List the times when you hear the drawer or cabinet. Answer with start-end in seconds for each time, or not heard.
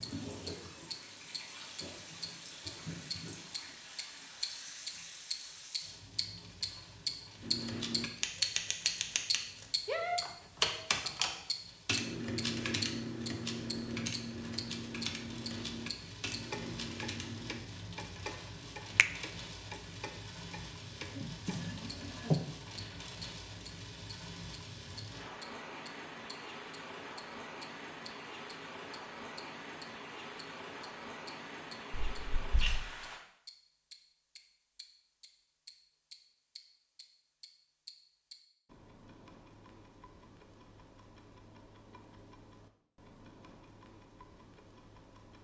21.1-22.4.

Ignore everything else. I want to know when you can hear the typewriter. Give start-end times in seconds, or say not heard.
7.4-17.6.